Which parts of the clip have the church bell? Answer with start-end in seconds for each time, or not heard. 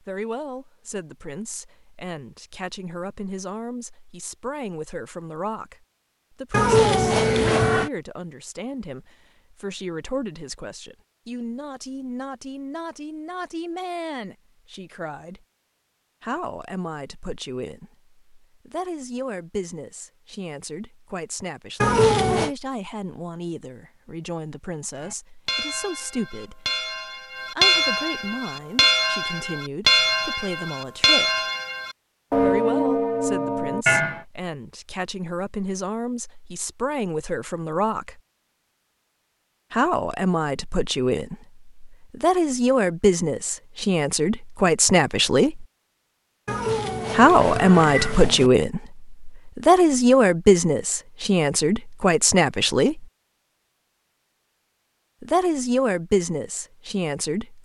24.9-34.2.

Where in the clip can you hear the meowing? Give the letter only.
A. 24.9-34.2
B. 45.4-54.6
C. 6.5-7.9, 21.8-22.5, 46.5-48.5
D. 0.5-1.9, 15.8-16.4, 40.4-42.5
C.